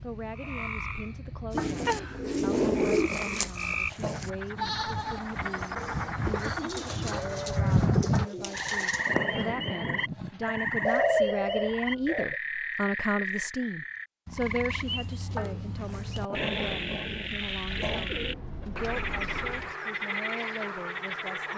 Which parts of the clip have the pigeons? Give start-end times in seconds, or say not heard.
1.5-3.1, 6.2-9.2, 10.8-12.3, 17.7-19.8.